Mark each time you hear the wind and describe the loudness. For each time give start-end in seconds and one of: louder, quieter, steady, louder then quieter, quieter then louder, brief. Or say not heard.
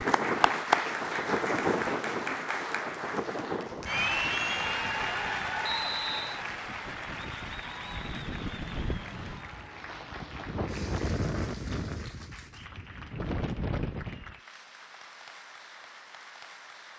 0.0-14.3 quieter then louder.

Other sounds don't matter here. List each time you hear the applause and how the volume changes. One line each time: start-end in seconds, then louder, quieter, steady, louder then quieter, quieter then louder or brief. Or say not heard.
0.0-16.9 quieter.